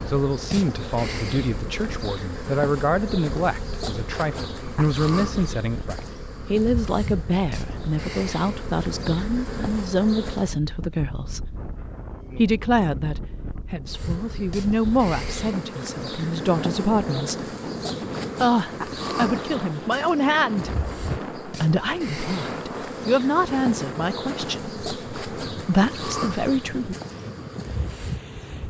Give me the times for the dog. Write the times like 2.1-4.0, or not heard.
not heard.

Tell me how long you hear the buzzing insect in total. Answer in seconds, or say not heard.
25 s.